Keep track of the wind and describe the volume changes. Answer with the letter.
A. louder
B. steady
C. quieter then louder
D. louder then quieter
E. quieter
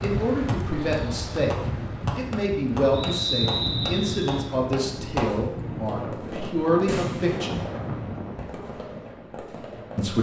B.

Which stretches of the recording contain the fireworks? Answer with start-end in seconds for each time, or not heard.
0.0-10.1.